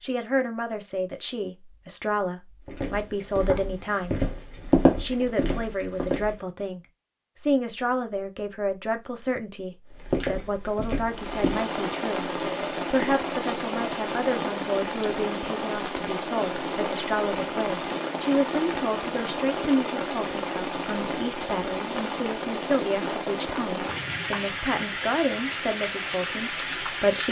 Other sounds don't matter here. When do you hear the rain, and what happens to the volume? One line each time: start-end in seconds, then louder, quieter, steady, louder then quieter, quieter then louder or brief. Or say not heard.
11.0-27.2 steady.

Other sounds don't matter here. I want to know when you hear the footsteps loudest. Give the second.
5 s.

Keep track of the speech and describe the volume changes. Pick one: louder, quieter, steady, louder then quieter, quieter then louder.
steady.